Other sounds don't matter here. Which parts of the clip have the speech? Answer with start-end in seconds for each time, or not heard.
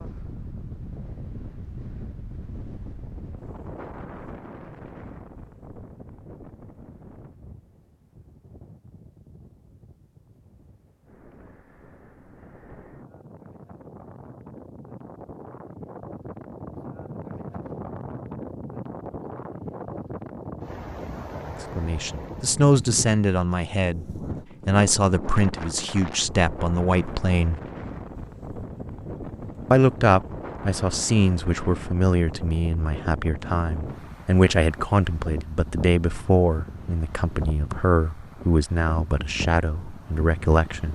21.8-27.6, 29.7-40.8.